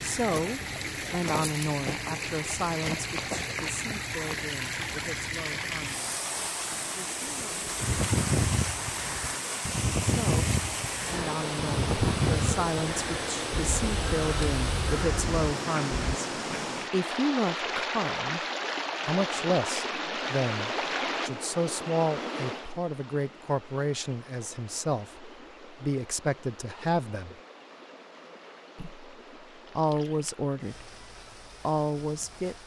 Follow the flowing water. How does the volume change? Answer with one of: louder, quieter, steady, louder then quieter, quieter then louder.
quieter.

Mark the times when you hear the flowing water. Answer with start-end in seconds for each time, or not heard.
0.0-32.6.